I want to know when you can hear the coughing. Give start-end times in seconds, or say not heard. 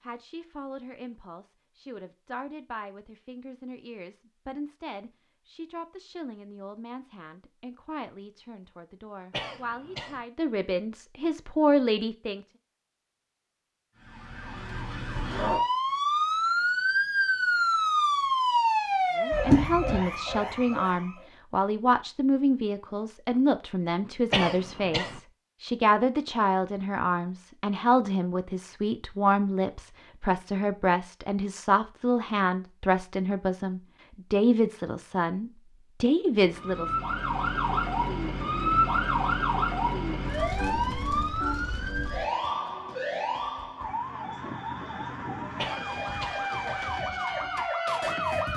9.3-10.2, 24.3-25.2, 45.5-46.5.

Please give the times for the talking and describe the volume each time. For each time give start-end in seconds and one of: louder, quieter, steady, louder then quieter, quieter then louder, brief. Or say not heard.
0.0-12.4 louder
19.1-37.0 steady.